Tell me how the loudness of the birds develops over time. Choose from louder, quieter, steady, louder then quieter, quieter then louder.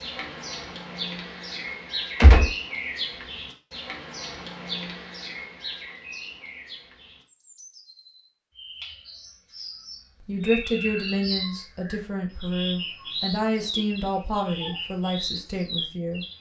quieter then louder.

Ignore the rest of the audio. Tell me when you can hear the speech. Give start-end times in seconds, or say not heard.
10.2-16.2.